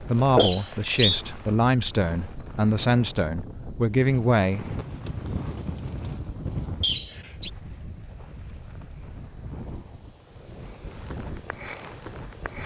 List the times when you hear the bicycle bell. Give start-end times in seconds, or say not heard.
not heard.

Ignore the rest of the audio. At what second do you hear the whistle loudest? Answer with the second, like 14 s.
1 s.